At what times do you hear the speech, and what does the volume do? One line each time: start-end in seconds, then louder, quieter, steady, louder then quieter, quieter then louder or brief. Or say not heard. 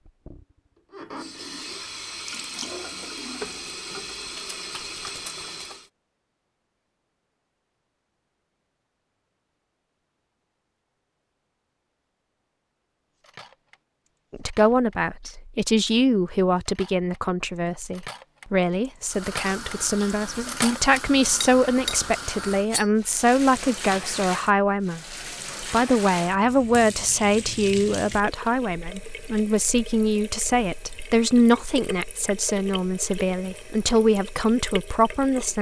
14.3-35.5 steady.